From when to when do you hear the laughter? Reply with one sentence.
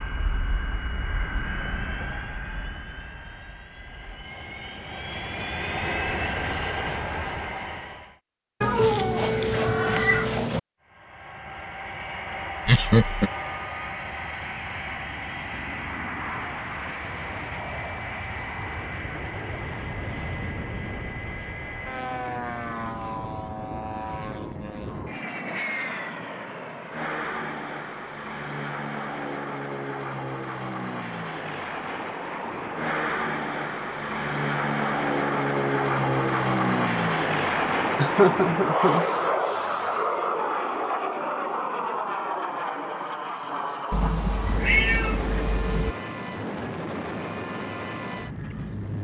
The laughter can be heard from 12.7 to 13.3 s and from 38.0 to 39.0 s.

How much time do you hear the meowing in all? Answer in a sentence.
The meowing can be heard for 4 seconds in total.